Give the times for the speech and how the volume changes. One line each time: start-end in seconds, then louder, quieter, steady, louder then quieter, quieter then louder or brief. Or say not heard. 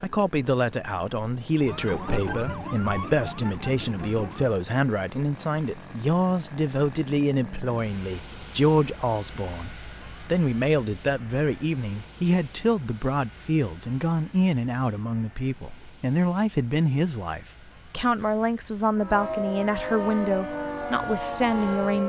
0.0-22.0 steady.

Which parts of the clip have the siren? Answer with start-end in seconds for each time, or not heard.
1.6-4.6, 18.9-22.0.